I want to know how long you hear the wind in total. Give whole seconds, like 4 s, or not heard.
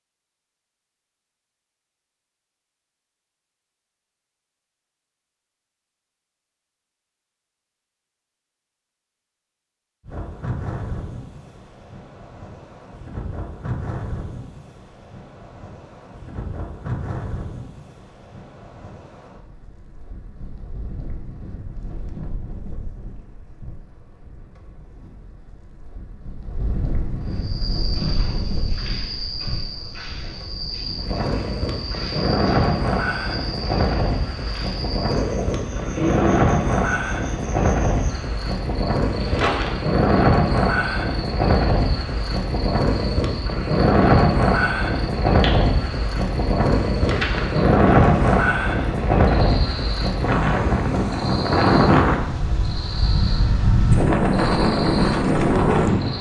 46 s.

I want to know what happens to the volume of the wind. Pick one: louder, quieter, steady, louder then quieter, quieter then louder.
louder.